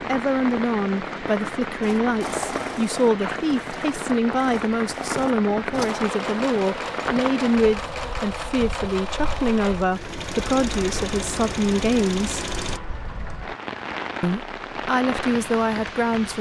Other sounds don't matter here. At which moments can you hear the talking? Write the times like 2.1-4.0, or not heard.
0.1-12.4, 14.2-16.3.